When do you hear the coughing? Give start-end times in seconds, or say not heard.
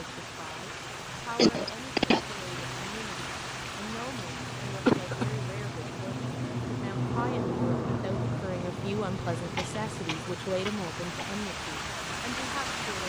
1.4-2.4, 4.8-5.2, 9.3-11.3.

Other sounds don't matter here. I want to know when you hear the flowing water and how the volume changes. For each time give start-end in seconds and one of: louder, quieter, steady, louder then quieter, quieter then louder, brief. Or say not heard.
0.0-13.0 quieter then louder.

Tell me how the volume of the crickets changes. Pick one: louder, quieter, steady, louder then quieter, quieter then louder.
louder then quieter.